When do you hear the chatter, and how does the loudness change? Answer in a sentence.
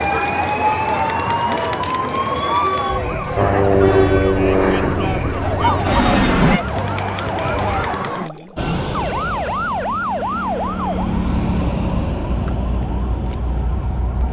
You can hear the chatter from 0.0 to 8.3 s, at a steady volume.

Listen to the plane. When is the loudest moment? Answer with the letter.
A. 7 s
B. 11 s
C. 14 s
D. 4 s
D.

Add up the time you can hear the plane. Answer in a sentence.
The plane can be heard for 9 seconds in total.